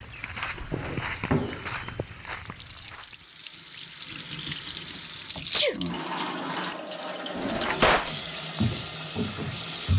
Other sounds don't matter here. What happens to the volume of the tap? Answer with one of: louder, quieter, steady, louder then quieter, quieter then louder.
louder.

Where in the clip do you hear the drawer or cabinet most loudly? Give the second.
8 s.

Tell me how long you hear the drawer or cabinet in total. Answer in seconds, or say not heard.
2 s.